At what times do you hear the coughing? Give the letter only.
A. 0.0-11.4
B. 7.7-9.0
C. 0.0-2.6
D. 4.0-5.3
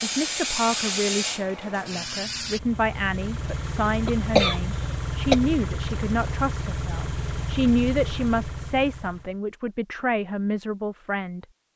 D.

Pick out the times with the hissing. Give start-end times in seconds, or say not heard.
0.0-2.6.